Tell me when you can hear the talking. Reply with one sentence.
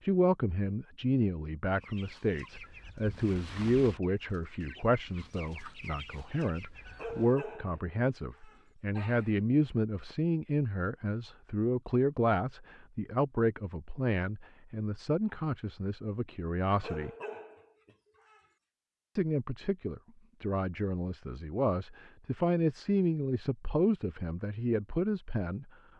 The talking can be heard from 0.0 to 17.1 s and from 19.1 to 25.7 s.